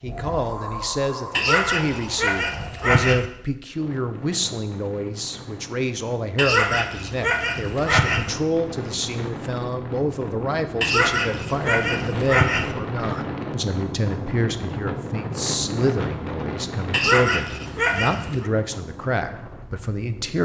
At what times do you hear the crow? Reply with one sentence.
The crow can't be heard in this clip.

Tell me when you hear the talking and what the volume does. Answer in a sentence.
You can hear the talking from 0.0 to 20.4 s, at a steady volume.